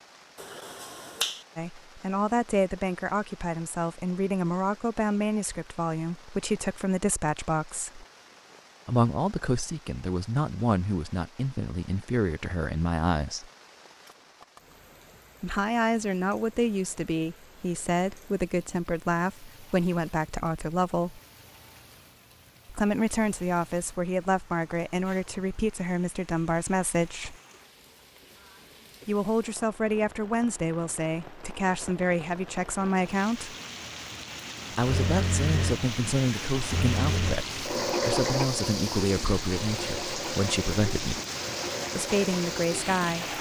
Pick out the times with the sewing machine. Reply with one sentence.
The sewing machine can be heard from 34.7 to 43.3 s.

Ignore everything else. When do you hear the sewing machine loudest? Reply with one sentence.
The volume of the sewing machine peaks at 38 seconds.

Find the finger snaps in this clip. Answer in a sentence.
The finger snaps can be heard from 0.3 to 1.4 s.